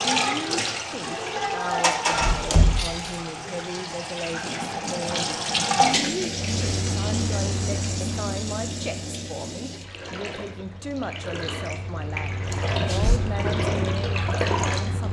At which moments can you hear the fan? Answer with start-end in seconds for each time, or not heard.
6.2-15.0.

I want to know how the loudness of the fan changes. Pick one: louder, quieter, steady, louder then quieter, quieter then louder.
quieter then louder.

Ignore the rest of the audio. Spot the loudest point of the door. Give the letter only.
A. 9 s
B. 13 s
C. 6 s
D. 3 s
D.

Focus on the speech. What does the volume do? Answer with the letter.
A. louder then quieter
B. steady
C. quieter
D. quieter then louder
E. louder
B.